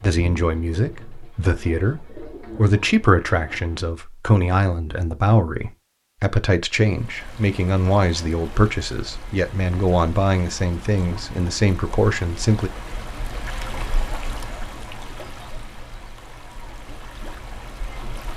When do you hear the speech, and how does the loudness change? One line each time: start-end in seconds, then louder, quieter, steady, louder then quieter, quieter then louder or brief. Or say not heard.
0.0-12.7 steady.